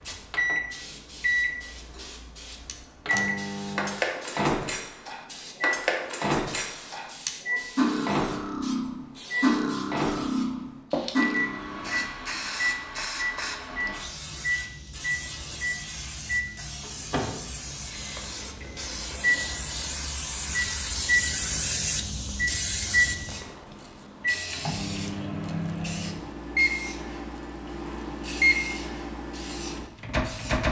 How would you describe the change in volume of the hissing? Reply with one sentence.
The loudness of the hissing goes up, then down.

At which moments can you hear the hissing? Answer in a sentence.
You can hear the hissing from 0.0 to 30.6 s.